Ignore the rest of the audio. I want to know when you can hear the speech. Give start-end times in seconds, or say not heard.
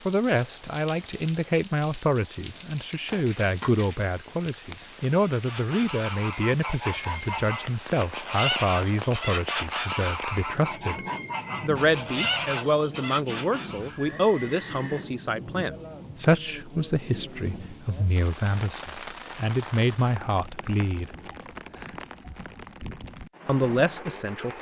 0.1-11.0, 11.6-21.1, 23.4-24.5.